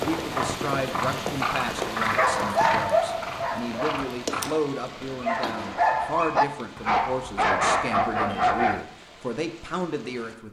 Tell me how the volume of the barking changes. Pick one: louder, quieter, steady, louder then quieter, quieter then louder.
quieter then louder.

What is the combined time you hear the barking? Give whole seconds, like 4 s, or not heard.
7 s.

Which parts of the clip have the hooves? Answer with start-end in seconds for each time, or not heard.
0.0-4.5.